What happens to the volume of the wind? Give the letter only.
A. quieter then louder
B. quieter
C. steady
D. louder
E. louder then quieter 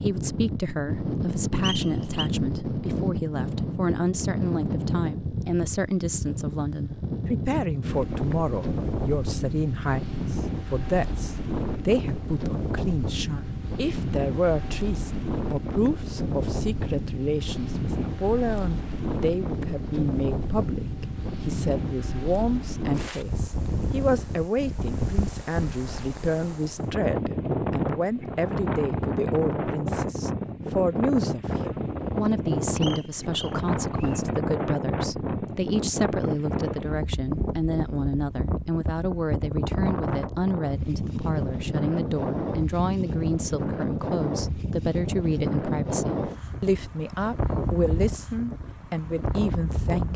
C.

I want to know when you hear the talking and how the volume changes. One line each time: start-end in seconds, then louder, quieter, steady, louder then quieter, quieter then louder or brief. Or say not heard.
0.0-50.1 steady.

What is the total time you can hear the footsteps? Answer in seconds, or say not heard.
not heard.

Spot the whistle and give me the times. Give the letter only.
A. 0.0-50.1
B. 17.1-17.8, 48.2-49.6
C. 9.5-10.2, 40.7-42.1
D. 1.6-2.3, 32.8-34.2
D.